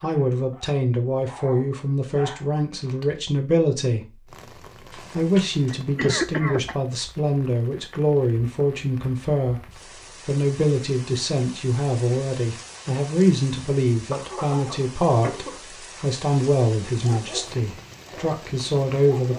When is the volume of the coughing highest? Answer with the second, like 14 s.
6 s.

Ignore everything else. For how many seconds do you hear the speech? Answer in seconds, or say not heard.
18 s.